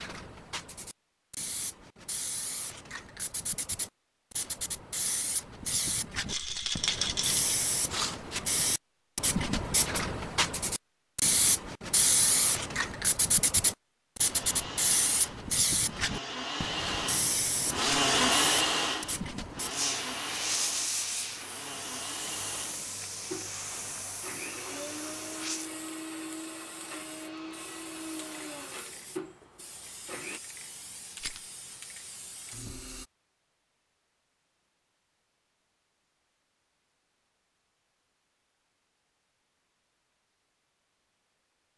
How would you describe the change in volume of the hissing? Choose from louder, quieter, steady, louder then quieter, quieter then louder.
louder then quieter.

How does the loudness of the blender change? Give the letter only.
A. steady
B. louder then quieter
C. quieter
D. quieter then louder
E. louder
B.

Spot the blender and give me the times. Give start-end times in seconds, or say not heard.
14.3-30.4.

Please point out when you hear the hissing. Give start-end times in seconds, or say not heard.
0.0-33.0.